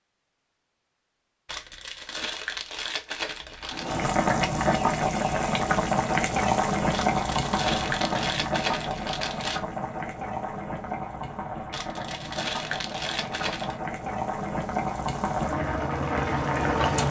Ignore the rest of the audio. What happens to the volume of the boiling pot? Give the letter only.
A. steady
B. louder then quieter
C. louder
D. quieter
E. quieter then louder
E.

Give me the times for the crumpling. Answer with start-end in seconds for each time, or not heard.
1.4-3.9, 6.9-9.6, 11.7-13.8.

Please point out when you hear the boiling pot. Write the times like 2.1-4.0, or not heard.
3.7-17.0.